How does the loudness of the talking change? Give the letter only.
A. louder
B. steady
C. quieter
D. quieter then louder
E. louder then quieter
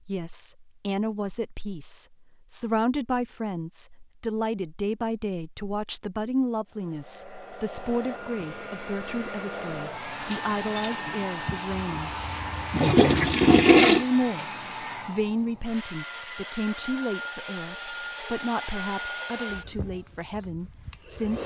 B.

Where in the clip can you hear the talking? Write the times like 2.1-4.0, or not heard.
0.1-12.1, 13.9-21.4.